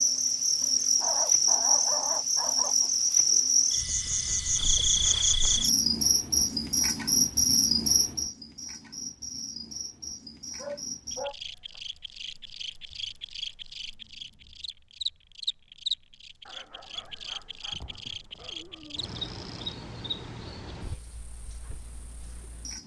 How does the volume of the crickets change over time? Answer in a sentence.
The loudness of the crickets goes down.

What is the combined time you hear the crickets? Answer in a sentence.
You can hear the crickets for 23 seconds altogether.